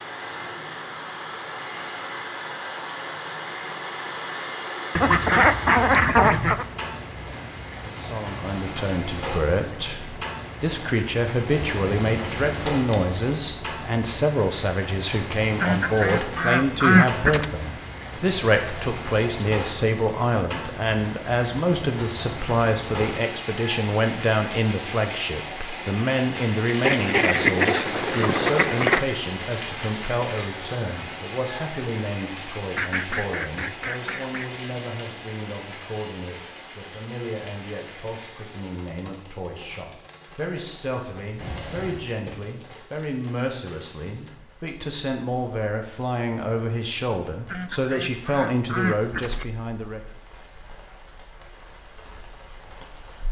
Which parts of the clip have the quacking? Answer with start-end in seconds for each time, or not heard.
5.0-6.7, 15.6-17.5, 26.8-29.0, 32.7-34.5, 47.5-49.5.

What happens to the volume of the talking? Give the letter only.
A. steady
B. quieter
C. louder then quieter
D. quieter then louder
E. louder
D.